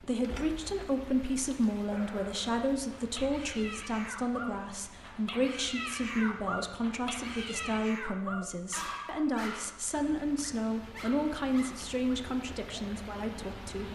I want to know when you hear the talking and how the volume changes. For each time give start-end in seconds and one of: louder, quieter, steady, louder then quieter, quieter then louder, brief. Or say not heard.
0.0-13.9 steady.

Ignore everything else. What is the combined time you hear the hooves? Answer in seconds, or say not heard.
not heard.